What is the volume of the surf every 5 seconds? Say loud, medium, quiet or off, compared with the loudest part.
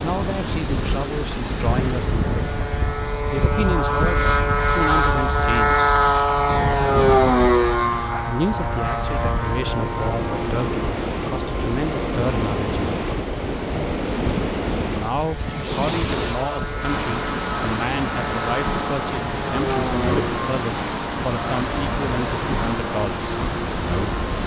medium, medium, loud, loud, loud.